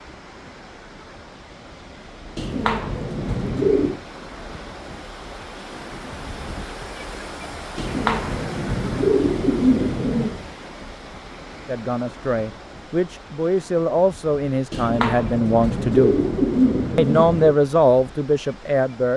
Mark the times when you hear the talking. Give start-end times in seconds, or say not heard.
11.7-16.1, 16.9-19.1.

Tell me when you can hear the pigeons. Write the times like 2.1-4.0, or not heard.
2.4-4.0, 7.8-10.4, 14.7-17.6.